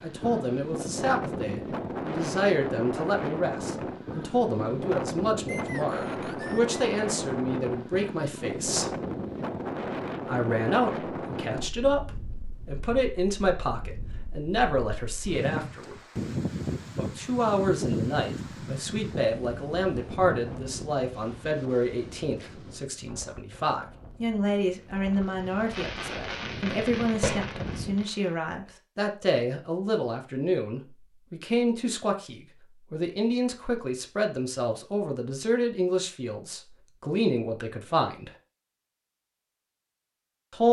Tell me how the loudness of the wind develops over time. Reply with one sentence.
The volume of the wind goes down.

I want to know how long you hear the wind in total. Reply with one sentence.
The wind can be heard for 28 seconds in total.